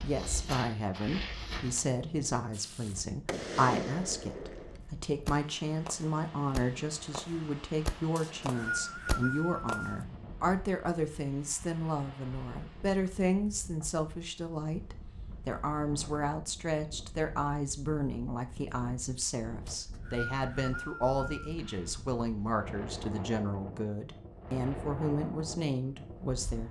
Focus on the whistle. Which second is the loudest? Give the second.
9 s.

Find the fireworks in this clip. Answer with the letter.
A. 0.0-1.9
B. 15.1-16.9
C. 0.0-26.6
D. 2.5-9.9
D.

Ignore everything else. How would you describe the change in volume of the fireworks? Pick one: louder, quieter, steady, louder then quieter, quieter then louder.
quieter then louder.